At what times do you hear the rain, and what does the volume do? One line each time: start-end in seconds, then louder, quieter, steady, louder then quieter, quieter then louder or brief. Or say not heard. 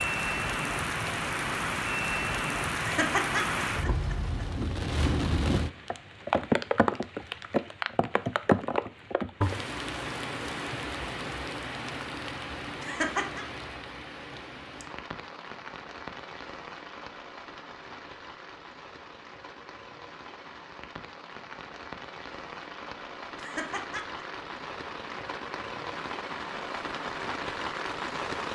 0.0-28.4 quieter then louder.